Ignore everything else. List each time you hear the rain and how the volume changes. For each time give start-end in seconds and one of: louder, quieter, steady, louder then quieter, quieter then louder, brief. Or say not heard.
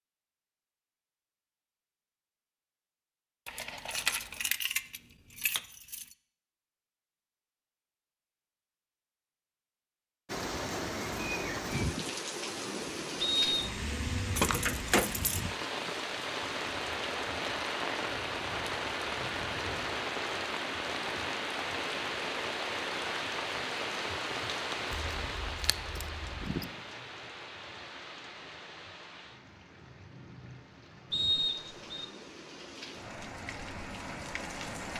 10.2-34.9 quieter.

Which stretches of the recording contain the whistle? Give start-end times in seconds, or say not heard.
13.2-13.7, 31.1-32.0.